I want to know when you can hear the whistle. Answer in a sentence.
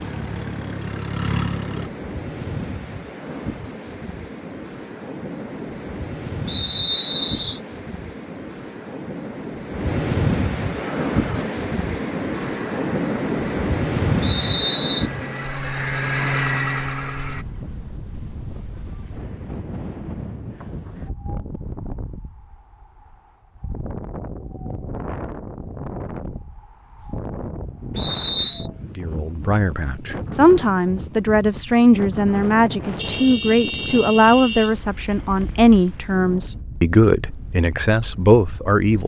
You can hear the whistle from 6.5 to 7.6 s, from 14.2 to 15.1 s and from 27.9 to 28.7 s.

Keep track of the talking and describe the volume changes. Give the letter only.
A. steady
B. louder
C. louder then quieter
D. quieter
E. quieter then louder
A.